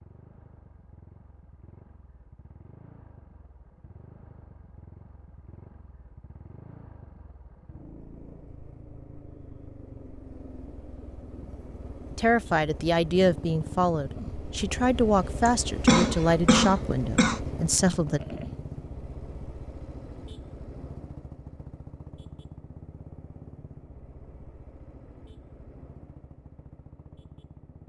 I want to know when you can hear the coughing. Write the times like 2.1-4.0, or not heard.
15.4-17.4.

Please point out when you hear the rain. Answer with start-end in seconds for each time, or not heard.
not heard.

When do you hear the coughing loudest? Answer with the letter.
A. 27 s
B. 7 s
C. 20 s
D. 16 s
D.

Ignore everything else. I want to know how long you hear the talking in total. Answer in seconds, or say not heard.
6 s.